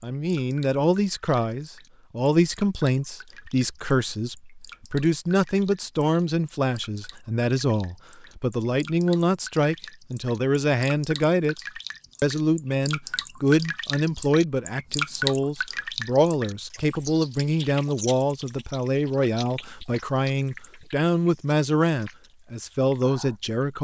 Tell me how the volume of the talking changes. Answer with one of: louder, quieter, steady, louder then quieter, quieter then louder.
steady.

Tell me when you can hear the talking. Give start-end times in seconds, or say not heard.
0.0-23.7.